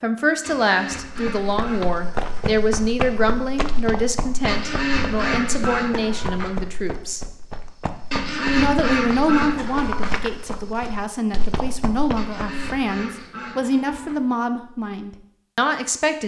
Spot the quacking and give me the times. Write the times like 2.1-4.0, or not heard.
0.4-2.5, 4.5-6.5, 8.1-10.2, 12.2-14.2.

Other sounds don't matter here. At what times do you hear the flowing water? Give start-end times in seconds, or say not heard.
not heard.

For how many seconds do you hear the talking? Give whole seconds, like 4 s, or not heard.
15 s.